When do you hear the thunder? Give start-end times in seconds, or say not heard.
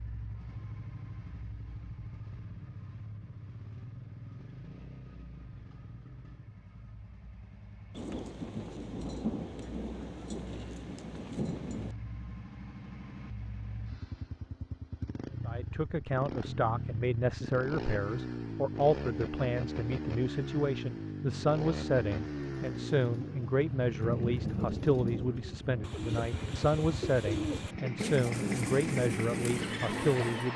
8.0-11.9, 24.0-27.8.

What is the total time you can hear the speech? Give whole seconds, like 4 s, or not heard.
15 s.